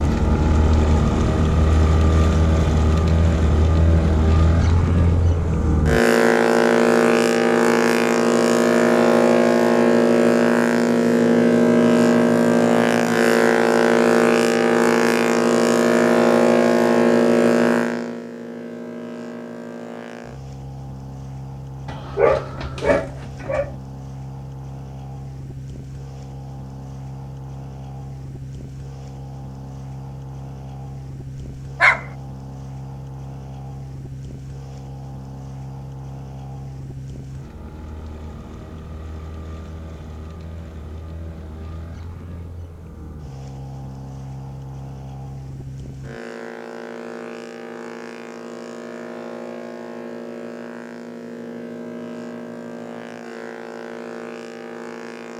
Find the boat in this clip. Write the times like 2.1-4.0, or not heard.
0.0-55.3.